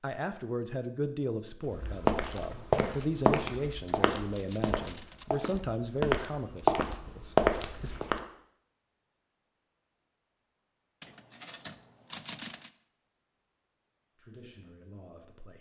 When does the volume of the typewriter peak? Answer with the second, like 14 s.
12 s.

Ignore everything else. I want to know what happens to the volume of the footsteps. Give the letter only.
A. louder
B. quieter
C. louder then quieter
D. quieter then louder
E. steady
D.